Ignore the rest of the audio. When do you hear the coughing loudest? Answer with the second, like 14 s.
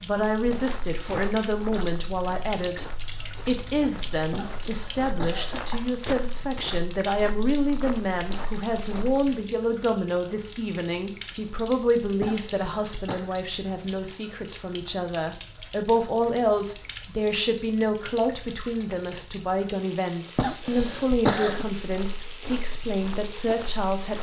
21 s.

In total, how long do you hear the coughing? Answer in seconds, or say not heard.
4 s.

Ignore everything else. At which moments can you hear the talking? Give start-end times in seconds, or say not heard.
0.0-2.9, 3.5-24.1.